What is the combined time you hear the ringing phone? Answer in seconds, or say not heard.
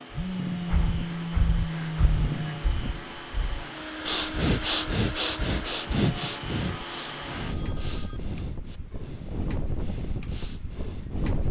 4 s.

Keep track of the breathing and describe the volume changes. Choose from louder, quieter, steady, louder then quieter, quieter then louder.
louder then quieter.